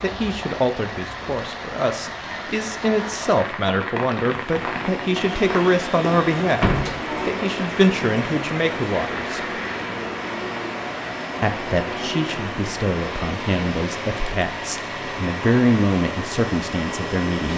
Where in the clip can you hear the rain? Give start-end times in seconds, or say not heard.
0.0-17.5.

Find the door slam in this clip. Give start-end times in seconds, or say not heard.
6.6-7.0.